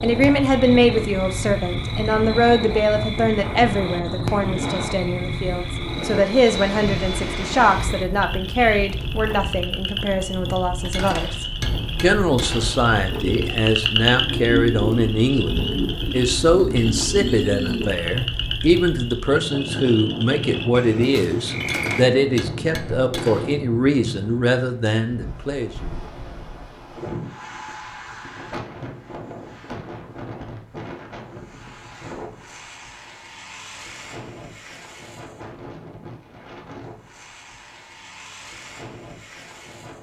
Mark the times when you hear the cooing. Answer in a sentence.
The cooing can be heard from 13.1 to 17.9 s.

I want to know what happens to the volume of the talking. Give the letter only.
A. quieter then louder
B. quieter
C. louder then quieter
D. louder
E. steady
E.